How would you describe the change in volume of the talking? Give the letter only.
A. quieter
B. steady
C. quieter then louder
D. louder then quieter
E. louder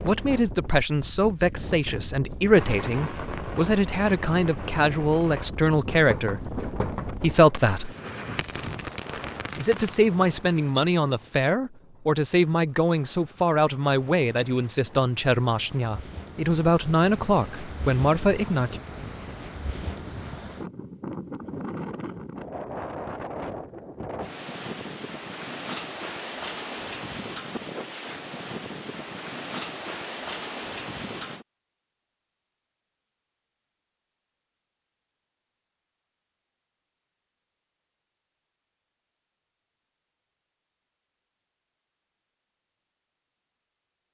B.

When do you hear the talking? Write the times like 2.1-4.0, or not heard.
0.0-8.0, 9.6-18.8.